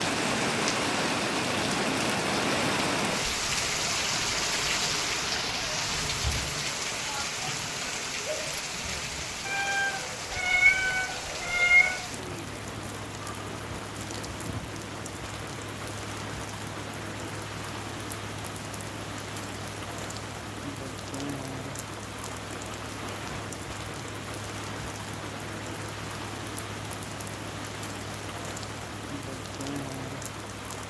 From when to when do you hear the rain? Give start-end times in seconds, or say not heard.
0.0-30.8.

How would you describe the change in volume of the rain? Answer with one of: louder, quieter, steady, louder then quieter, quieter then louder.
quieter.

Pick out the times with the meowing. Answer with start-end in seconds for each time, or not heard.
9.4-12.0.